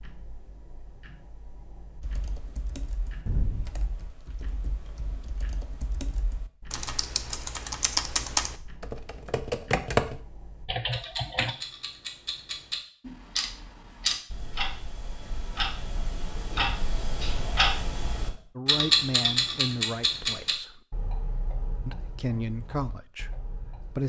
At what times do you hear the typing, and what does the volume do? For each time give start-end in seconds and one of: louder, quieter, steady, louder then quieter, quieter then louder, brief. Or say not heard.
2.0-11.6 quieter then louder.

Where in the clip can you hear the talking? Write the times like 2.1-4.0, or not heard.
18.6-20.8, 21.9-24.0.